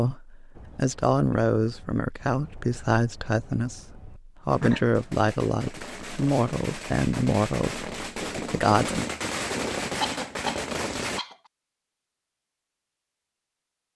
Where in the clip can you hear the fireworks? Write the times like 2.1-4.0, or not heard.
0.5-11.2.